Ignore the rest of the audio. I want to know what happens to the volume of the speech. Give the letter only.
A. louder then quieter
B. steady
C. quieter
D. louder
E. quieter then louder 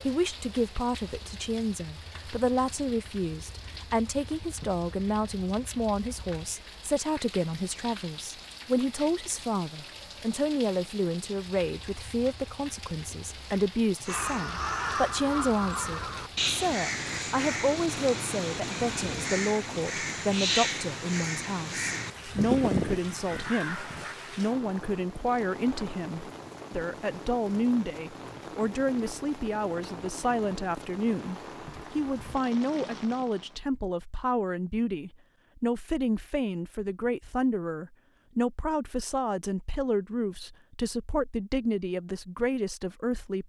B.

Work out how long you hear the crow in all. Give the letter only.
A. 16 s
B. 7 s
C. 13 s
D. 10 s
D.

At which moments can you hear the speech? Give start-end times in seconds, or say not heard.
0.1-43.4.